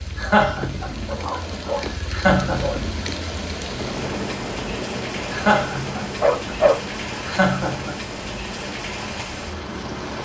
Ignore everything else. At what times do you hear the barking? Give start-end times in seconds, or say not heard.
1.1-2.8, 6.2-6.8.